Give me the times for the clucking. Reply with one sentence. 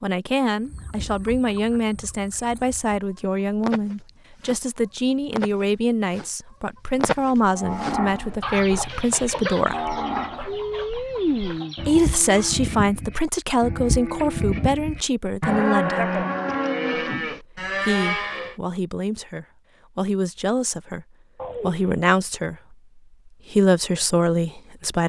The clucking can be heard from 0.6 to 12.6 s.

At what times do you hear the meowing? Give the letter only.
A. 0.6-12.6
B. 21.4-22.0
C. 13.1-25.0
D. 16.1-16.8
B.